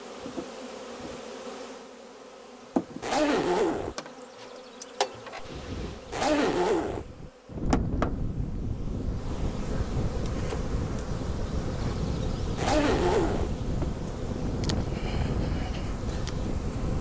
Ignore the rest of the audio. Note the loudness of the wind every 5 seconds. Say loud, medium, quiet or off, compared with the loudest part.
off, loud, loud, loud.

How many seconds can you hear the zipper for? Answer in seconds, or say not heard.
3 s.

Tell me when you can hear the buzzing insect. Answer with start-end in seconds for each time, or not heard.
0.0-16.9.